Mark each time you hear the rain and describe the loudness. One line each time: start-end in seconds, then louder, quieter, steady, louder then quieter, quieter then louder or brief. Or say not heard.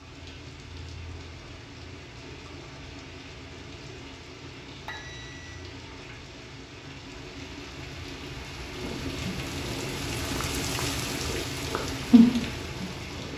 0.0-13.3 louder.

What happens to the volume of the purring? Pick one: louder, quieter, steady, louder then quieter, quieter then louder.
louder.